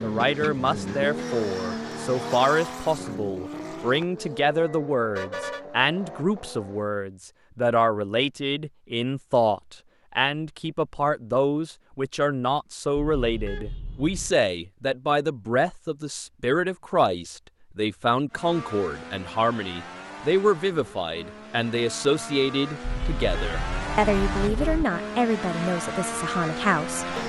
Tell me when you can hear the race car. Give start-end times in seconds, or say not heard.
0.0-6.8, 18.3-27.2.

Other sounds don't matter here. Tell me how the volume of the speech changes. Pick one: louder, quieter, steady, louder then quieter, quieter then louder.
steady.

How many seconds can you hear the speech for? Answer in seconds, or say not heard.
27 s.